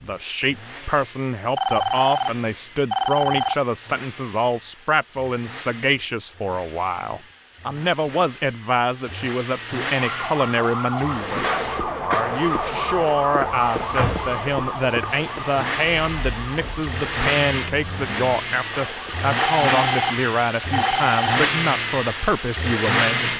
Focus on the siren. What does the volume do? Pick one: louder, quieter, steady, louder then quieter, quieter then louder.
quieter.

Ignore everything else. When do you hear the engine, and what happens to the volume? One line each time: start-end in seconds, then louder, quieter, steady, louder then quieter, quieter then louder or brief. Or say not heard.
0.0-23.3 louder.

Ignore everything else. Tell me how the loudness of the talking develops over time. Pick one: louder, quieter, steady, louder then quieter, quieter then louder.
steady.